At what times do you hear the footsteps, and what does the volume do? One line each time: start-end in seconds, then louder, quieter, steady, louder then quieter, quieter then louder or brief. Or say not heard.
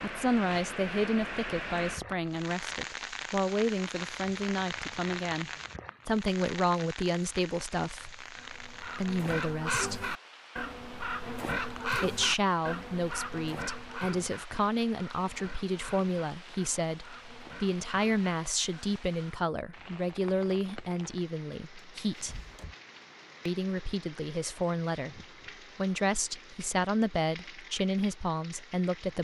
not heard.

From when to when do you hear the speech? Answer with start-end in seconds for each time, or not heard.
0.0-10.1, 11.9-22.4, 23.4-29.1.